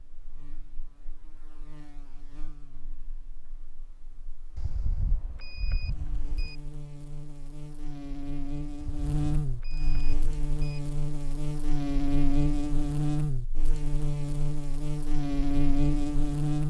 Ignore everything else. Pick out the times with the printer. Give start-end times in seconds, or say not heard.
not heard.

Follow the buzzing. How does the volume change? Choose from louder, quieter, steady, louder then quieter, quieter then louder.
louder.